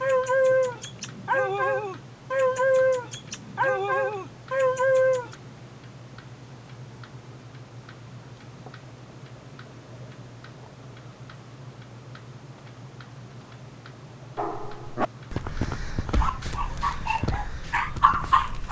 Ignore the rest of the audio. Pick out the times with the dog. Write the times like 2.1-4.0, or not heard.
0.0-5.3, 14.3-18.6.